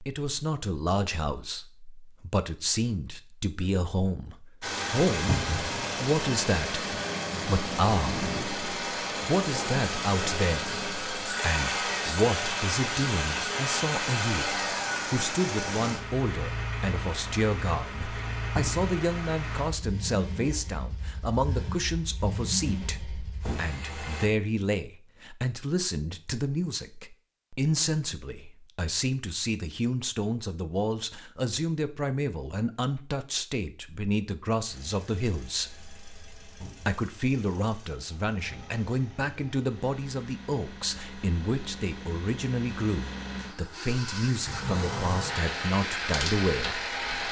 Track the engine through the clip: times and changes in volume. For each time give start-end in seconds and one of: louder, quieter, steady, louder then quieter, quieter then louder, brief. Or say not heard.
4.6-24.2 quieter
34.6-47.2 louder.